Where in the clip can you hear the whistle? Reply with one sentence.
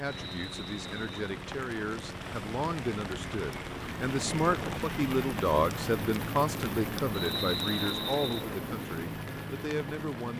The whistle can be heard from 0.1 to 1.2 s and from 7.1 to 8.4 s.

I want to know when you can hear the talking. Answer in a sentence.
The talking can be heard from 0.0 to 10.3 s.